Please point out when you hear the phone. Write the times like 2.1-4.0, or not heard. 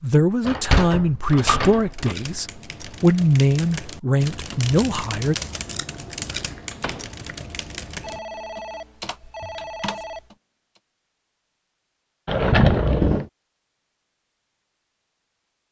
8.0-10.3.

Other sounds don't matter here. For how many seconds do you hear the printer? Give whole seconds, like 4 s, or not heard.
not heard.